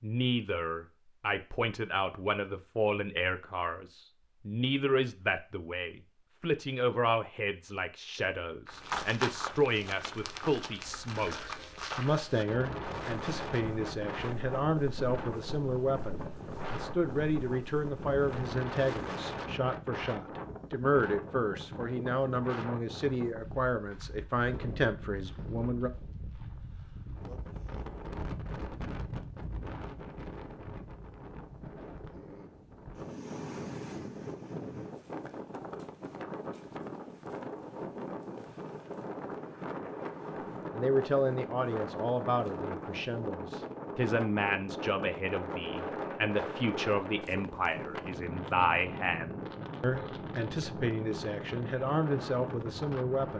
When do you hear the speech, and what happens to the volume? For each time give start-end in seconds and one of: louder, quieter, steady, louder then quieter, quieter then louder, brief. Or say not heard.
0.0-25.9 steady
40.7-53.3 steady.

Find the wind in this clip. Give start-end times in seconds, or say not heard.
12.4-53.3.